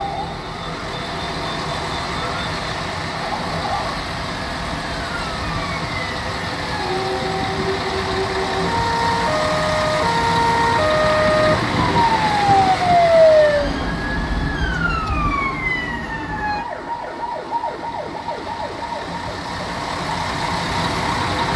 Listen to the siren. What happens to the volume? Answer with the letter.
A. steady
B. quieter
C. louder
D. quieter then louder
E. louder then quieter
E.